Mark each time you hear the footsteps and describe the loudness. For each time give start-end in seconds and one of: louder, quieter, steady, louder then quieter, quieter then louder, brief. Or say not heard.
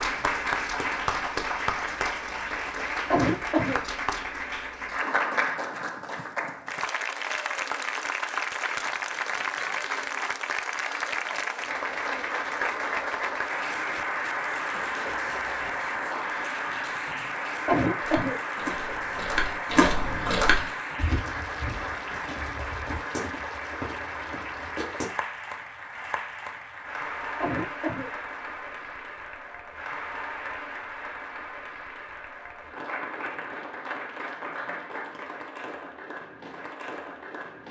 17.9-25.1 louder then quieter.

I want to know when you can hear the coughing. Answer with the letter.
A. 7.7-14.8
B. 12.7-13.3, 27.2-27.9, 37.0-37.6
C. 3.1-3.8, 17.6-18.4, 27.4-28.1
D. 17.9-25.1
C.